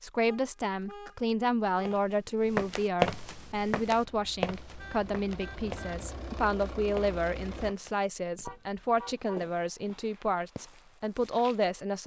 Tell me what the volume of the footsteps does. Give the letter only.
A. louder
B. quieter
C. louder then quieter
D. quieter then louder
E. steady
B.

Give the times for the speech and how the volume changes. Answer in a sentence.
You can hear the speech from 0.0 to 12.0 s, at a steady volume.